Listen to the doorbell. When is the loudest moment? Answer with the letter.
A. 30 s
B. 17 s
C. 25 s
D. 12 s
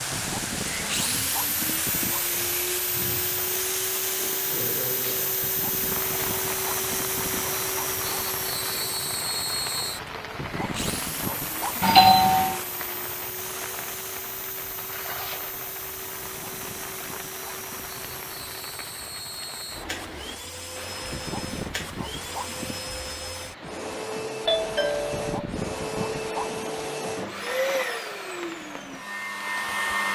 D.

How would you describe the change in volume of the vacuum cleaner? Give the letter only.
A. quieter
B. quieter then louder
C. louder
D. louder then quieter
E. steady
B.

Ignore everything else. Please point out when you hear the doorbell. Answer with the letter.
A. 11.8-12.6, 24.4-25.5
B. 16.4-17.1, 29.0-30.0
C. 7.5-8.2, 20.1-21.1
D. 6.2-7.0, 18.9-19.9
A.